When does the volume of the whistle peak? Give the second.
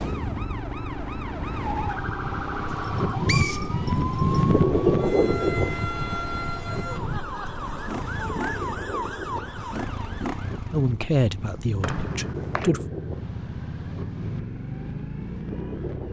3 s.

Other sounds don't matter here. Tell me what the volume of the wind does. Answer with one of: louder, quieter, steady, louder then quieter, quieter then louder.
quieter.